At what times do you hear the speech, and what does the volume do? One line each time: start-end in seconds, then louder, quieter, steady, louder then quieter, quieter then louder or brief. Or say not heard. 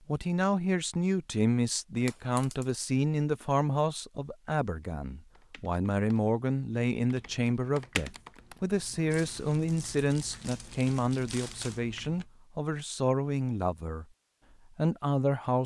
0.1-14.1 steady
14.7-15.6 brief.